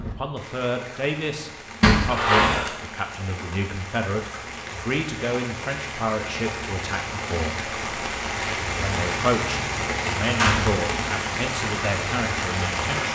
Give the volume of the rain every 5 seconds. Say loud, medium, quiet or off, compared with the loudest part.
medium, loud, loud.